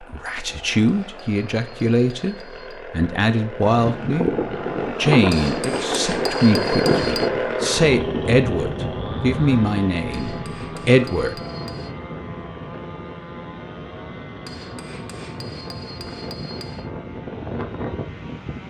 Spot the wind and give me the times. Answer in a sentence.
The wind can be heard from 3.6 to 18.6 s.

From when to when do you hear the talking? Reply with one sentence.
You can hear the talking from 0.1 to 4.3 s and from 5.0 to 11.3 s.